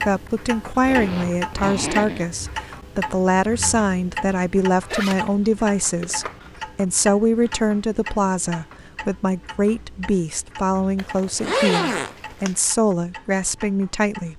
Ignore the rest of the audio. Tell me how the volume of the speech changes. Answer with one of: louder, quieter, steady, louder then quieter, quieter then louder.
steady.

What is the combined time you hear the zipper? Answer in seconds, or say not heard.
4 s.